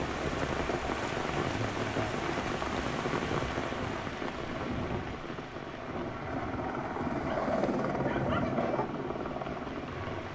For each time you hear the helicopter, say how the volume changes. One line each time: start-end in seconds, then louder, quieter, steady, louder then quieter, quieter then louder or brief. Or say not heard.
0.0-10.3 louder.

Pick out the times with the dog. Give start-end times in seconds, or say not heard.
7.2-8.8.